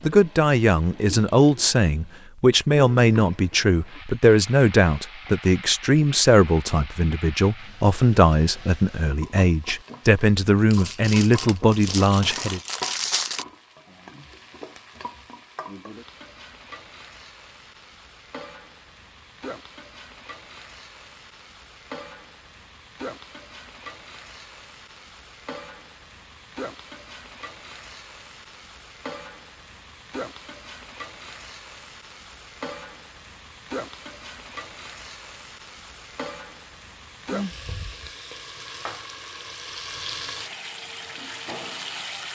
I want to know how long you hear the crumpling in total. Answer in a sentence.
The crumpling can be heard for 3 seconds in total.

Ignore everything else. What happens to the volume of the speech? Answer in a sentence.
The volume of the speech stays about the same.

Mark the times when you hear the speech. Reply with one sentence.
You can hear the speech from 0.0 to 12.6 s.